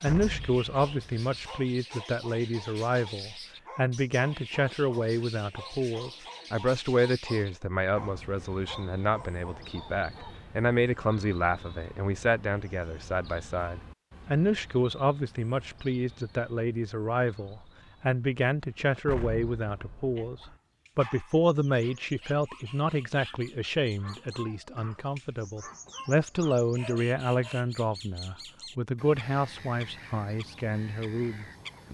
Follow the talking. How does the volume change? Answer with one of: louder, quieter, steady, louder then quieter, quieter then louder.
steady.